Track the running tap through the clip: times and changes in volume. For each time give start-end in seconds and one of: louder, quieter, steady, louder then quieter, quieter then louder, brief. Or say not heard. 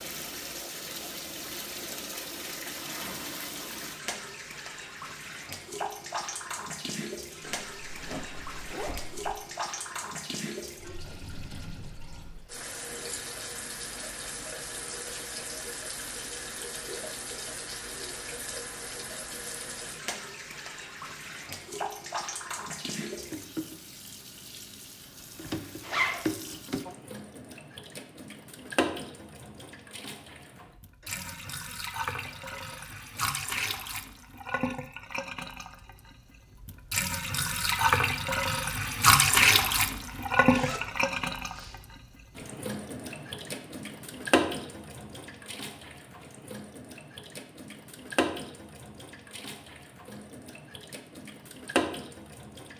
0.0-52.7 louder then quieter.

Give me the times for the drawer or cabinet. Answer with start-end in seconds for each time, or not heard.
not heard.